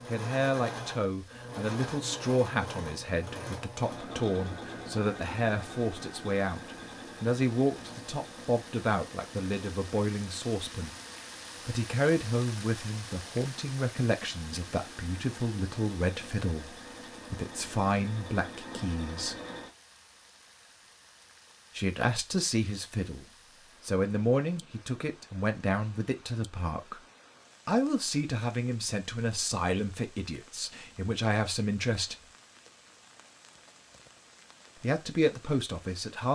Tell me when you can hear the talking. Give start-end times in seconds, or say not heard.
0.1-10.9, 11.7-19.4, 21.8-27.1, 27.6-32.2, 34.8-36.3.